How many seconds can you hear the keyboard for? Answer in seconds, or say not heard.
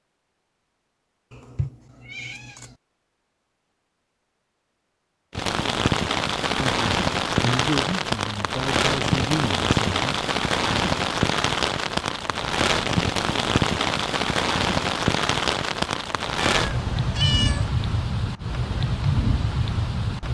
not heard.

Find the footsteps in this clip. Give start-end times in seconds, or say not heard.
not heard.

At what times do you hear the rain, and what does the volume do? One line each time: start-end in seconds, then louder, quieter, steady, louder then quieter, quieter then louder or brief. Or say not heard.
5.3-20.2 steady.